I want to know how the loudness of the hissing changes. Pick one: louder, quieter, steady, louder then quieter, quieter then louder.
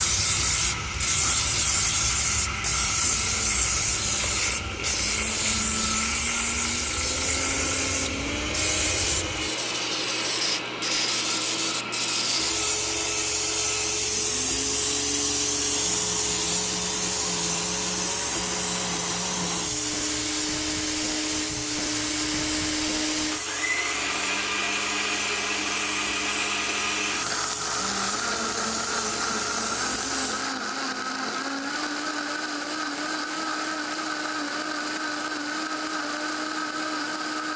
quieter.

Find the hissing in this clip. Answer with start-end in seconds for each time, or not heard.
0.0-30.6.